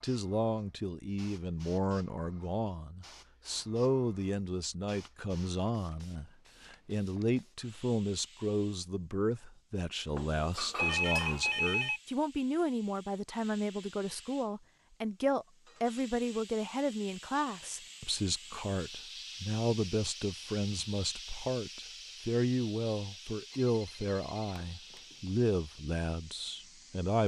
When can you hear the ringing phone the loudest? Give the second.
11 s.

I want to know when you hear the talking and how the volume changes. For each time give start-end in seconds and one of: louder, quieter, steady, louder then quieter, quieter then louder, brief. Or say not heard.
0.0-27.2 steady.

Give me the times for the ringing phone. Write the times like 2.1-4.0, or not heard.
10.8-12.0, 23.5-25.3.